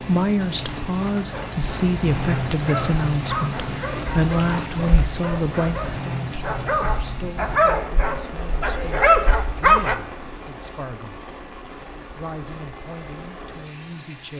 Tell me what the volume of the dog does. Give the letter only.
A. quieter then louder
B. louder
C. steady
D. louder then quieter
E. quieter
B.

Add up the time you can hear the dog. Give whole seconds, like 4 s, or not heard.
9 s.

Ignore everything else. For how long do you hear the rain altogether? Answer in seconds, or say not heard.
14 s.